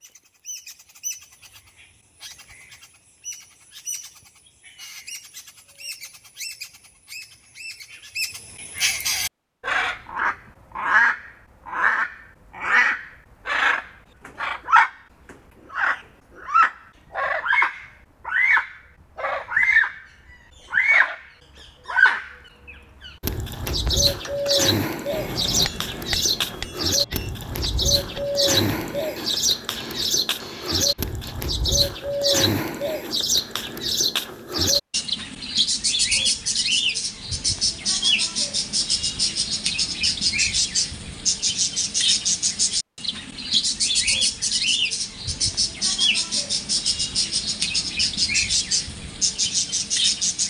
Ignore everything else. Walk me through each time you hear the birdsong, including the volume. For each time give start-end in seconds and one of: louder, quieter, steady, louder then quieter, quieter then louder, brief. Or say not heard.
0.0-20.0 louder
20.7-21.2 brief
21.9-50.4 steady.